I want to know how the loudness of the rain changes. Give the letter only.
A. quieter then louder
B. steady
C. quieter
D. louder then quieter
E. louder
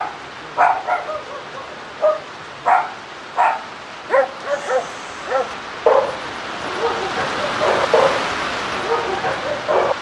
E.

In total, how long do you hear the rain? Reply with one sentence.
The rain can be heard for 10 seconds in total.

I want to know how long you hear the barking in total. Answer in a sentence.
You can hear the barking for 10 seconds altogether.